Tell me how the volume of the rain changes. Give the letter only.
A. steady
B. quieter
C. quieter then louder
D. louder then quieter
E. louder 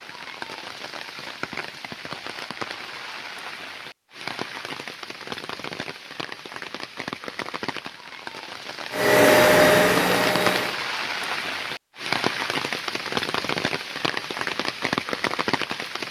E.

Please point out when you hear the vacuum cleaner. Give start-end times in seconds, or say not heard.
8.9-10.8.